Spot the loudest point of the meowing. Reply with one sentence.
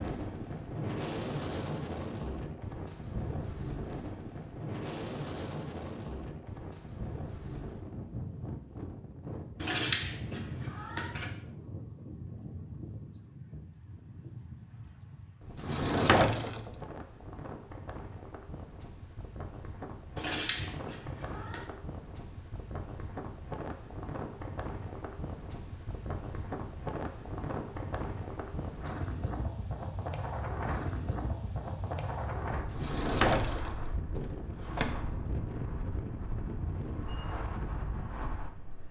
The loudest moment of the meowing is at 10 seconds.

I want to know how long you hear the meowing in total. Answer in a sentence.
You can hear the meowing for 3 seconds altogether.